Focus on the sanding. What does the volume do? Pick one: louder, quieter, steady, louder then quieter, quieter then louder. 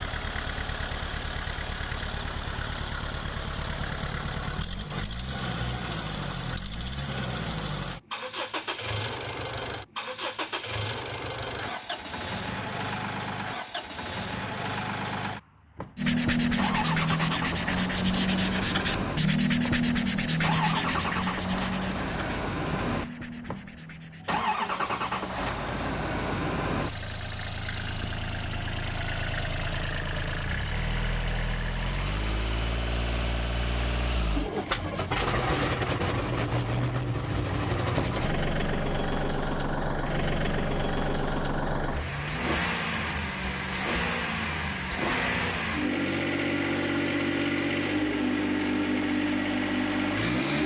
quieter.